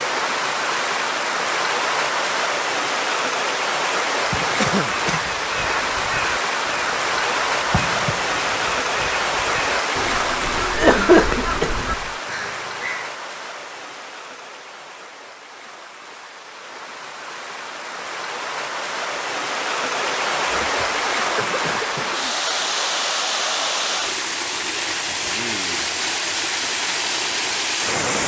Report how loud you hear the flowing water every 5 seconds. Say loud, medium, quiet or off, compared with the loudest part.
loud, loud, medium, medium, loud, loud.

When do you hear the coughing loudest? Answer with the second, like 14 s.
11 s.